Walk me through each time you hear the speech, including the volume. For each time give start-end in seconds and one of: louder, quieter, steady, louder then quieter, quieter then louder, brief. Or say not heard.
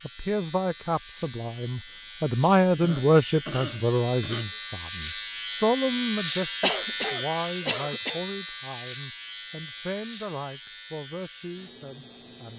0.0-12.5 quieter.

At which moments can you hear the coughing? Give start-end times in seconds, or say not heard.
2.8-4.6, 6.6-8.2.